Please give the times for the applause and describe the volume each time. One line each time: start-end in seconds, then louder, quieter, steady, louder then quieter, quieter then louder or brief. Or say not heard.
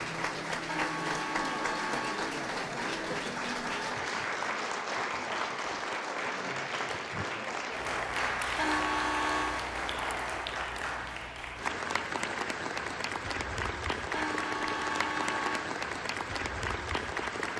0.0-17.5 steady.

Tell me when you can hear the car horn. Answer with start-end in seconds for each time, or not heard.
0.7-2.2, 8.6-9.7, 14.1-15.7.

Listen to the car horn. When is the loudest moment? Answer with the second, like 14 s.
9 s.